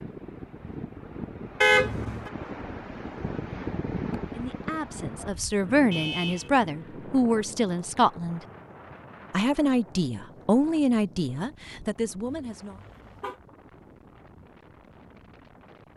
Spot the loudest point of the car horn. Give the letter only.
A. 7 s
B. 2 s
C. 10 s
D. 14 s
B.